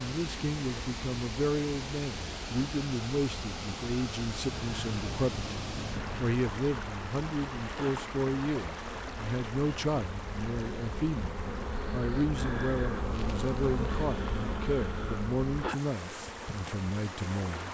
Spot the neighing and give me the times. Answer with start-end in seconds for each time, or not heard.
4.5-6.2.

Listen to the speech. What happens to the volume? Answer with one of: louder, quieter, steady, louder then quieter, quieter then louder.
steady.